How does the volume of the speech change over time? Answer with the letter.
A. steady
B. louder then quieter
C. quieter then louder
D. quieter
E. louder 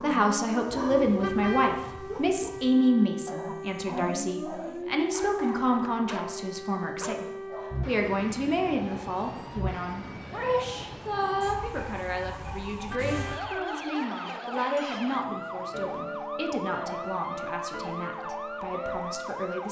D.